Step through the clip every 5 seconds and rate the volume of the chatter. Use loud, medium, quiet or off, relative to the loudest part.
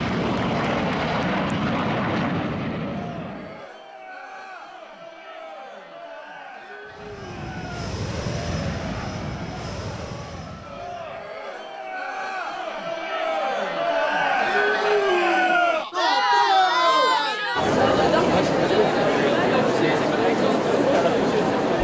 quiet, quiet, medium, loud, loud.